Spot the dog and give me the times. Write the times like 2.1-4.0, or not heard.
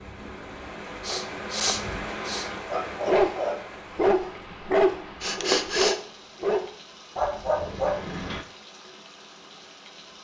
2.7-8.4.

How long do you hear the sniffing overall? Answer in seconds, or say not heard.
2 s.